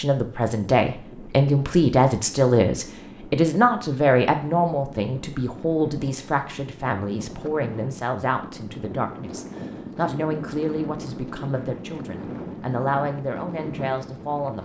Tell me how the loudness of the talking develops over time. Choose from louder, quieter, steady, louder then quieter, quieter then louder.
quieter.